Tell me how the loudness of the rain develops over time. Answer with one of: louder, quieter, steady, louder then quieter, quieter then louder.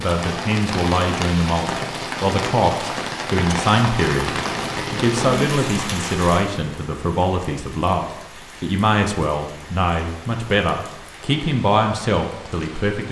quieter.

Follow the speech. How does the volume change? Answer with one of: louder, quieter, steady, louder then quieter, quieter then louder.
steady.